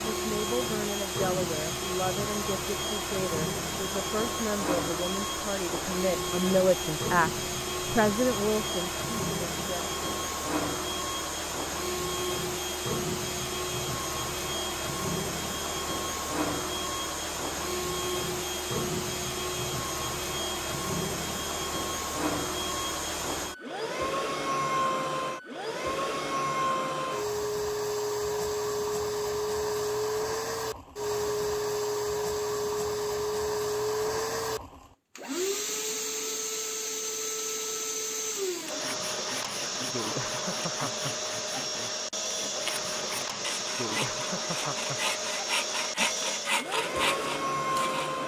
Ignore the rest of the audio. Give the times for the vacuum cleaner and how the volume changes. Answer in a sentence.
The vacuum cleaner can be heard from 0.0 to 48.2 s, at a steady volume.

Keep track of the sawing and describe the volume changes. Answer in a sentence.
The loudness of the sawing goes up.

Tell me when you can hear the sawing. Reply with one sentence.
The sawing can be heard from 38.6 to 48.1 s.